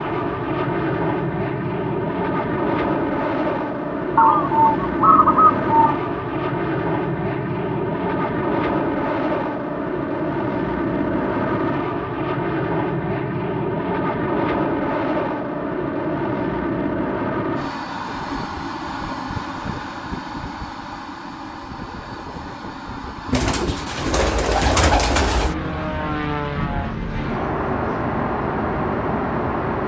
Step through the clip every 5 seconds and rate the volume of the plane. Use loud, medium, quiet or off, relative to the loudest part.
loud, loud, loud, loud, medium, loud.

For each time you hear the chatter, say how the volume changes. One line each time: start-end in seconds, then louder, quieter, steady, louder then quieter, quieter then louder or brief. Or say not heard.
not heard.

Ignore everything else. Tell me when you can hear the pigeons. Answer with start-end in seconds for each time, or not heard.
4.2-6.0, 23.3-25.6.